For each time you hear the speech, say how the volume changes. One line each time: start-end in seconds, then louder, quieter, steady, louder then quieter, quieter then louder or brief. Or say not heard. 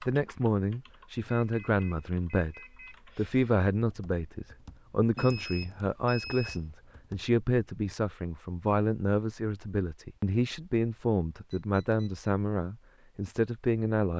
0.0-14.1 steady.